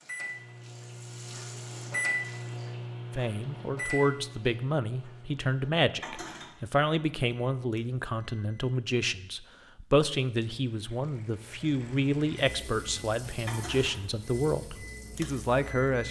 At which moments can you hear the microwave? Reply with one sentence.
You can hear the microwave from 0.0 to 8.7 s and from 12.3 to 16.0 s.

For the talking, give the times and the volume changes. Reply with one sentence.
The talking can be heard from 3.1 to 16.0 s, at a steady volume.